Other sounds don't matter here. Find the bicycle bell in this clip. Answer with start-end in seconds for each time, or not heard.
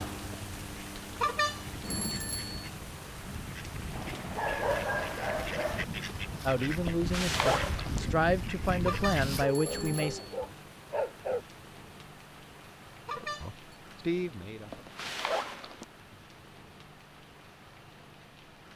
1.2-2.6, 8.8-10.2, 13.1-13.6.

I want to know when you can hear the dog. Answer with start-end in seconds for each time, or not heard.
3.9-5.8, 9.4-11.4.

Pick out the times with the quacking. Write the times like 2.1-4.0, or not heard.
0.4-9.4.